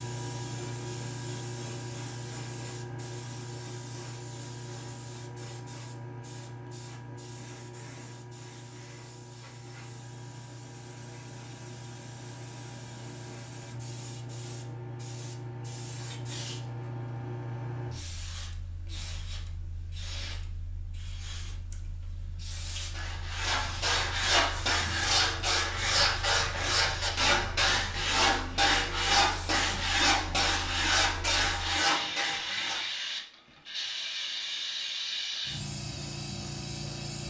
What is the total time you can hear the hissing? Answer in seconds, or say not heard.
37 s.